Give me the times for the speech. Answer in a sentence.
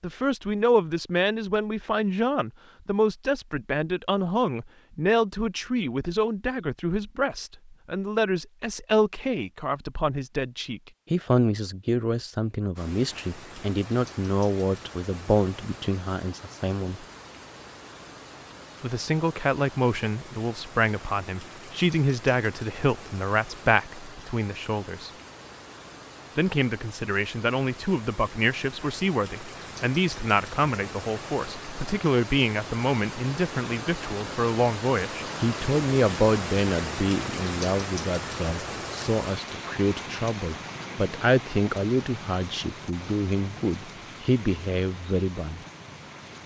You can hear the speech from 0.0 to 17.1 s, from 18.8 to 25.1 s and from 26.4 to 45.6 s.